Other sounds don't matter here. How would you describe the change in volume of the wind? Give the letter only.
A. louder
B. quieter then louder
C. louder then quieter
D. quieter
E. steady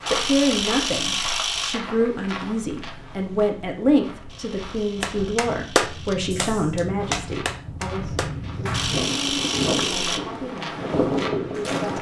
A.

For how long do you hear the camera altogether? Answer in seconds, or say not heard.
5 s.